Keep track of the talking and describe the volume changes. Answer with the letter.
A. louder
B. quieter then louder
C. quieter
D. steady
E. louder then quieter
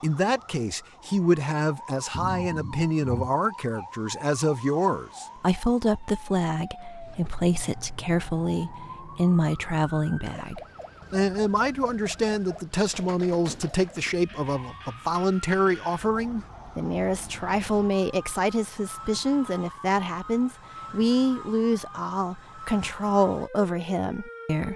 D.